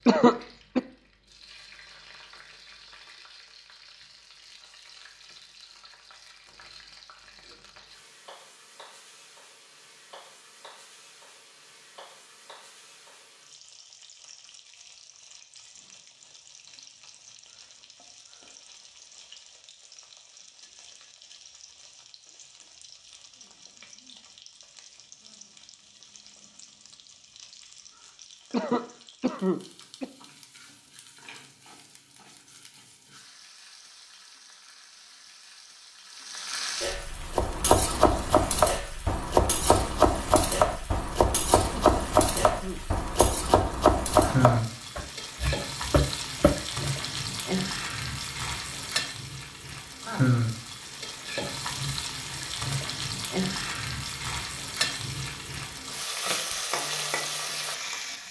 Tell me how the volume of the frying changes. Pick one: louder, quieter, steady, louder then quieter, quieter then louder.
louder.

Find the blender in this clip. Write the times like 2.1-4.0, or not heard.
not heard.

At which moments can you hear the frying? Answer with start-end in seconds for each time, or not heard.
0.0-58.2.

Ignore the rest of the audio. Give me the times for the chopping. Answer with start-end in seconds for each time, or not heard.
37.3-46.9.